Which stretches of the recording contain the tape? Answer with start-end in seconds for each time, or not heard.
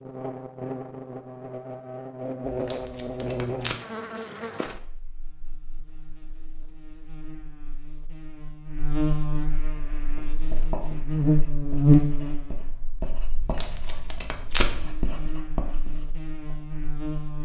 2.5-3.8, 13.3-14.9.